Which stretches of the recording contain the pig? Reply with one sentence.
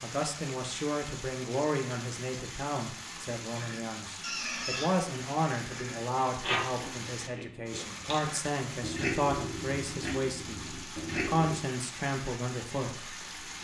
The pig can be heard from 3.1 to 11.6 s.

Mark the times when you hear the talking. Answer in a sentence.
The talking can be heard from 0.0 to 13.6 s.